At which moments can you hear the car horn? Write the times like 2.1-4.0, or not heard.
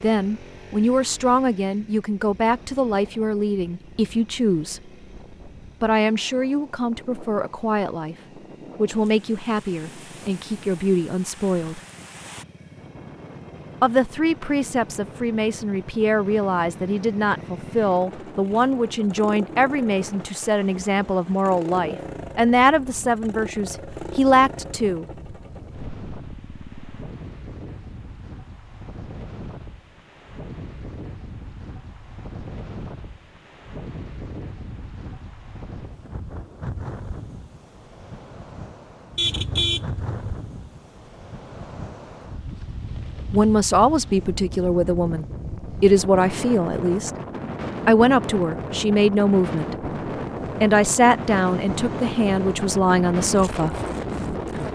39.1-40.4.